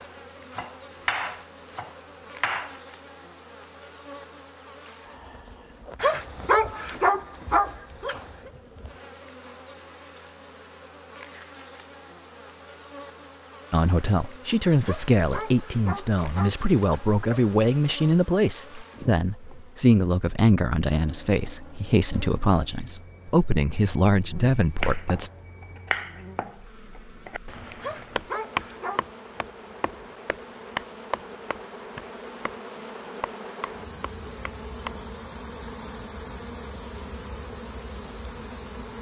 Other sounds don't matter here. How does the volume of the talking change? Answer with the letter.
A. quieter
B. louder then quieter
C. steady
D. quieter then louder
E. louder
C.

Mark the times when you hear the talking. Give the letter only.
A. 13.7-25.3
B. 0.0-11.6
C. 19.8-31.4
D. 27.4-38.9
A.